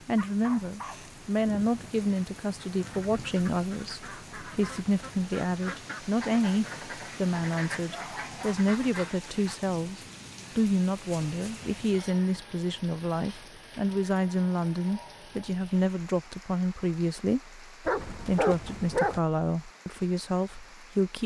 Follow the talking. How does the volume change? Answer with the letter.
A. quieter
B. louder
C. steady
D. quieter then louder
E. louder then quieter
C.